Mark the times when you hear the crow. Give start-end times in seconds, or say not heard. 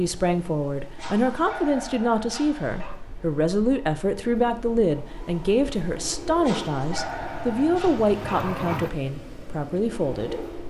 not heard.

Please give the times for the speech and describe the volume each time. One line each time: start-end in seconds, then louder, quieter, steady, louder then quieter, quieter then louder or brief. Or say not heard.
0.0-10.3 steady.